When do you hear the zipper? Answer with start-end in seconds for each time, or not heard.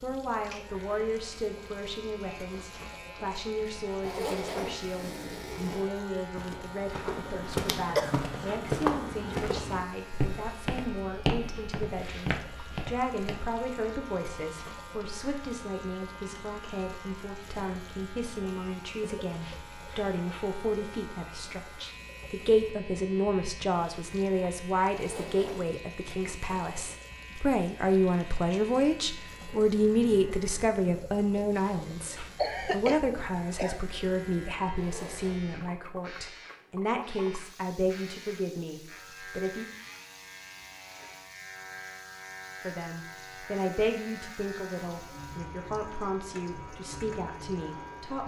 4.0-5.9, 24.9-25.6, 34.8-35.4.